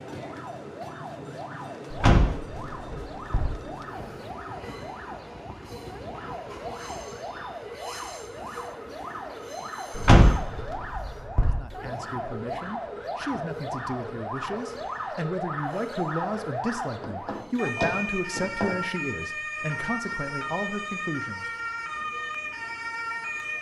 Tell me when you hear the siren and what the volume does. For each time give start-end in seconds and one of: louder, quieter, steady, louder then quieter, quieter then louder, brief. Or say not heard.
0.0-23.5 louder.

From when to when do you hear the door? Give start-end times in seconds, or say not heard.
1.9-3.5, 9.9-11.6, 17.0-18.7.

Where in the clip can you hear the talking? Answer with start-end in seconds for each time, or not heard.
11.4-21.9.